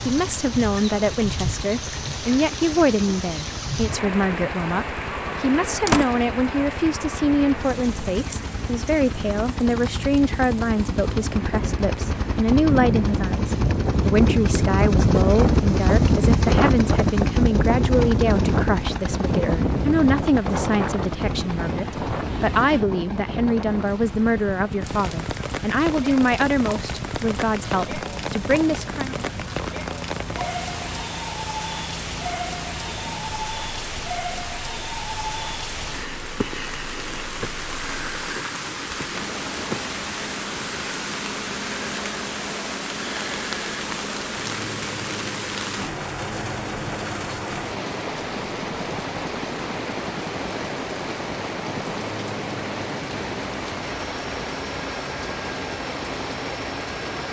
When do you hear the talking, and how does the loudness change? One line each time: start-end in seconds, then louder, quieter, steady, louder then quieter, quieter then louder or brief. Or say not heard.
0.1-29.1 steady.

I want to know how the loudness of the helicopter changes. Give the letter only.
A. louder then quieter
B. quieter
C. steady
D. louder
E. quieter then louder
A.